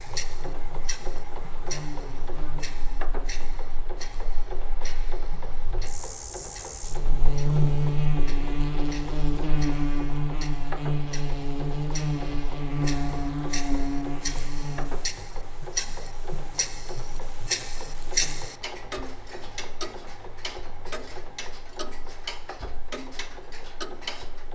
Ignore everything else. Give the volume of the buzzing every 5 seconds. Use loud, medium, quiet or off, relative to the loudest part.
quiet, loud, loud, quiet, off.